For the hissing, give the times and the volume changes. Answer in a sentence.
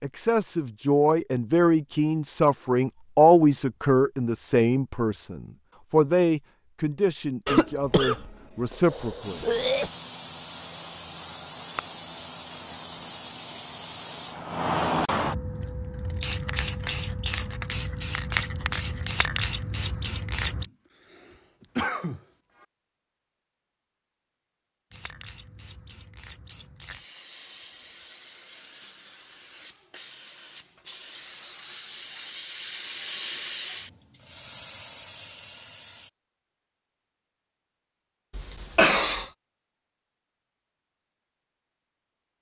You can hear the hissing from 9.2 to 20.6 s, getting louder; and from 24.9 to 36.1 s, getting louder then quieter.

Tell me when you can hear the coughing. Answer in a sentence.
You can hear the coughing from 7.5 to 9.9 s, from 20.6 to 22.2 s and from 38.4 to 39.3 s.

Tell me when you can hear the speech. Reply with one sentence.
The speech can be heard from 0.0 to 9.4 s.